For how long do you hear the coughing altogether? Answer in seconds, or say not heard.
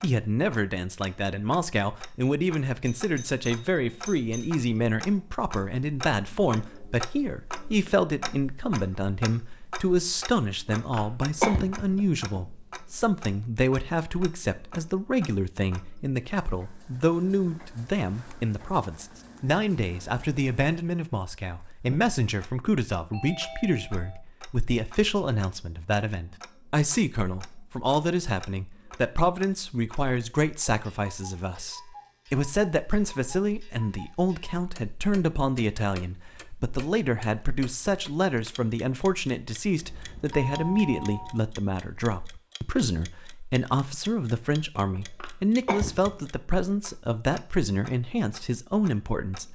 3 s.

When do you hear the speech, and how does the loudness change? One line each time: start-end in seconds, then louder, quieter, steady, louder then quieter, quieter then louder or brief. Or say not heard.
0.0-49.5 steady.